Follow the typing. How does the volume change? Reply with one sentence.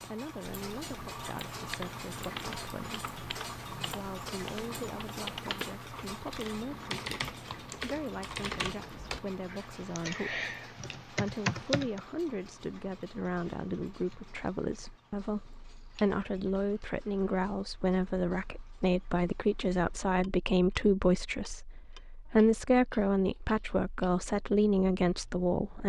The volume of the typing goes up.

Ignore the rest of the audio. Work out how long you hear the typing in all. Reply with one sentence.
The typing can be heard for 11 seconds in total.